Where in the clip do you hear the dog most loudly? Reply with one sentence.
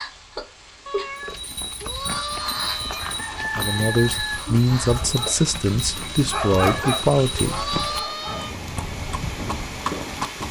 The volume of the dog peaks at 7 seconds.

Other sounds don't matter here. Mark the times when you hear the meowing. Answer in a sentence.
You can hear the meowing from 0.8 to 3.1 s and from 6.4 to 8.6 s.